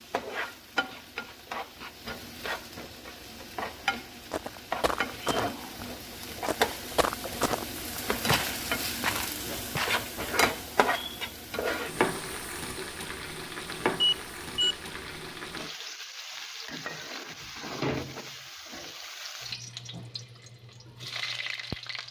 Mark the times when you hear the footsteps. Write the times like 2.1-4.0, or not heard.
4.3-10.1.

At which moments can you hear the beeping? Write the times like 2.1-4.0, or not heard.
14.0-14.8.